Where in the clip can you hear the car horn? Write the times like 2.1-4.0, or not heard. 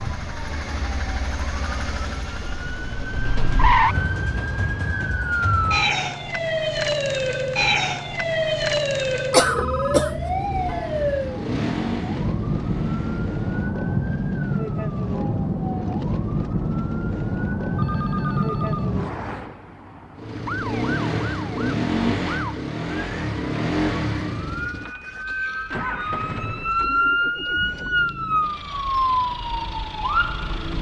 not heard.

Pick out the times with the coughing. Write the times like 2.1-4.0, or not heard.
9.3-10.1.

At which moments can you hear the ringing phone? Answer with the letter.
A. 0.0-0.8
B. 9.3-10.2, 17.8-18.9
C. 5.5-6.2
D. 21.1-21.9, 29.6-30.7
B.